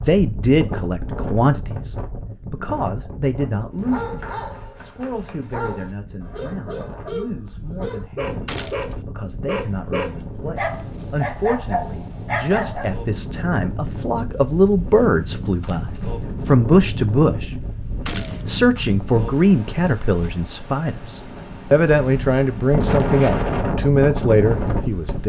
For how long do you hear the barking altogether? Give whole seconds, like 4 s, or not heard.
9 s.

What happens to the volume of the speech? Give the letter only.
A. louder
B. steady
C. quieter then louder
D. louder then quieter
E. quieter
C.